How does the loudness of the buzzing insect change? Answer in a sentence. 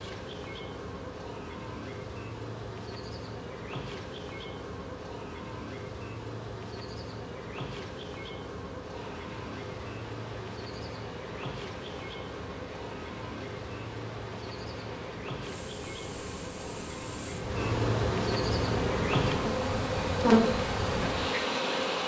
The volume of the buzzing insect goes up.